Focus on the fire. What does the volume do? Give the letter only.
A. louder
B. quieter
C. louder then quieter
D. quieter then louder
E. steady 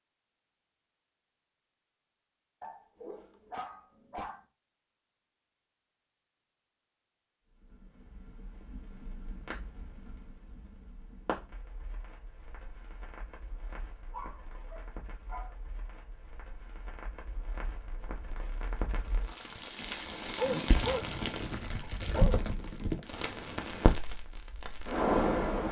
D.